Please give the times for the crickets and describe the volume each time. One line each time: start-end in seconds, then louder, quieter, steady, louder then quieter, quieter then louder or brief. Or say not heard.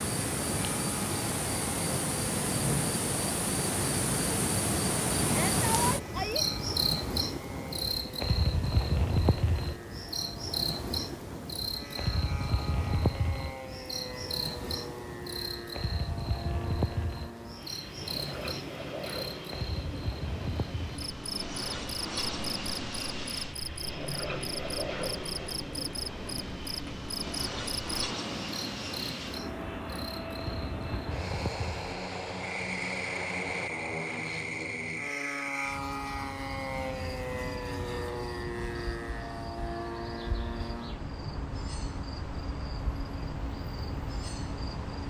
0.0-45.0 quieter.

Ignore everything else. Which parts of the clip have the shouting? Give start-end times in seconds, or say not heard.
5.2-6.5.